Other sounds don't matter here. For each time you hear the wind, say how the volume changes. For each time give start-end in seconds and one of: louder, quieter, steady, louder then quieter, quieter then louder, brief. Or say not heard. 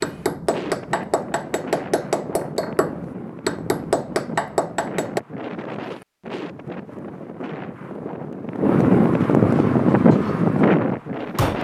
0.0-11.5 louder.